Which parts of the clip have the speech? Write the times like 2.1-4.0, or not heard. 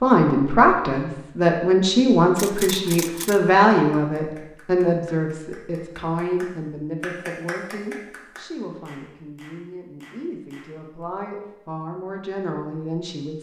0.0-13.3.